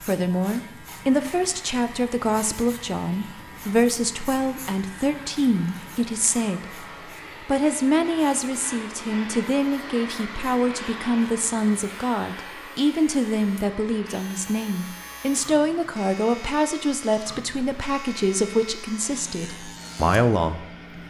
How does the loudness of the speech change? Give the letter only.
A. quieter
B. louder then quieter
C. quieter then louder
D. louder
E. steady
E.